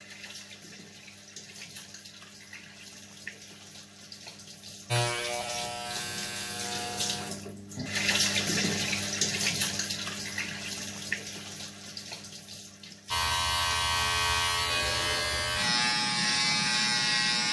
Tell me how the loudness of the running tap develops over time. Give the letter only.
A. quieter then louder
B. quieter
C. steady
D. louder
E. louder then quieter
E.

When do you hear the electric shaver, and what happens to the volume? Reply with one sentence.
You can hear the electric shaver briefly from 4.8 to 7.3 s; and from 13.1 to 17.4 s, at a steady volume.